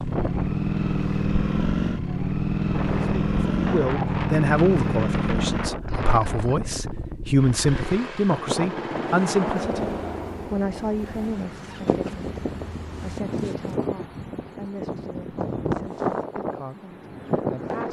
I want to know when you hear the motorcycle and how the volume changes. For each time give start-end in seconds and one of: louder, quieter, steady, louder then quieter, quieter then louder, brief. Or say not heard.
0.0-13.9 quieter.